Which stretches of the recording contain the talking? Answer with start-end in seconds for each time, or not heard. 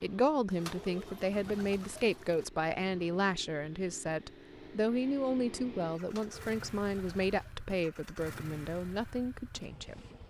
0.0-10.1.